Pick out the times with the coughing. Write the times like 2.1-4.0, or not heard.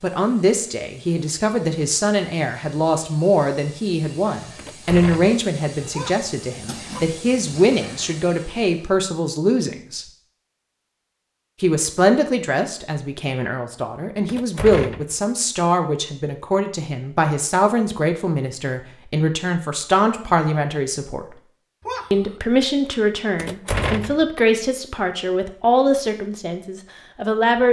5.9-7.1, 21.8-22.4.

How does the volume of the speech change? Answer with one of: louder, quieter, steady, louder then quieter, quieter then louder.
steady.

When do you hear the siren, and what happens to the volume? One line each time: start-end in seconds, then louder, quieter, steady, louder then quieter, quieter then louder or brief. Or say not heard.
not heard.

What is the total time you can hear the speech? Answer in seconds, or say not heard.
25 s.